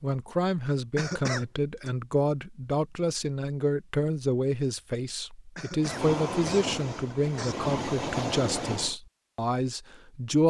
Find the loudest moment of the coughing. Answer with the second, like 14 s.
1 s.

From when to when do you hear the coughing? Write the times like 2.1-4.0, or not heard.
0.9-1.9, 5.5-7.5.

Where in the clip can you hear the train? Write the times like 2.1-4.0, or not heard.
5.8-8.9.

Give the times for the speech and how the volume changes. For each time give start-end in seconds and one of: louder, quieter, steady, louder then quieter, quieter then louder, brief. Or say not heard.
0.0-10.4 steady.